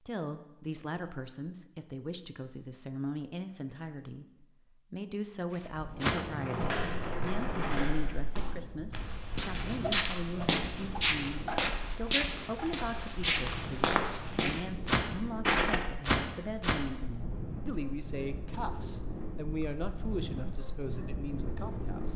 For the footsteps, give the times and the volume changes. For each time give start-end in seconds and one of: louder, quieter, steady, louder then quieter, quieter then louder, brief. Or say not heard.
5.5-16.8 louder.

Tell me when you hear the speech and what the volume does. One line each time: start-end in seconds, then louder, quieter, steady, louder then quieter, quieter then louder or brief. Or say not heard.
0.1-22.1 steady.